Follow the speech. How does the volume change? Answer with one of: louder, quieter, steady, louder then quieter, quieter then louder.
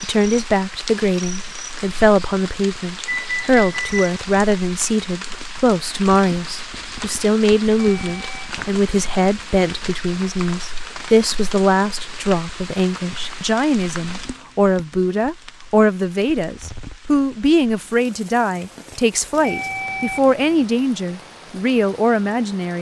steady.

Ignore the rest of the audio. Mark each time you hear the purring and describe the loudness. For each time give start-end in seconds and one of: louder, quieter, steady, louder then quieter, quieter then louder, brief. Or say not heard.
not heard.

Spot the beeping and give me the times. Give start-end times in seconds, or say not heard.
3.0-4.2, 7.8-8.5, 19.4-20.6.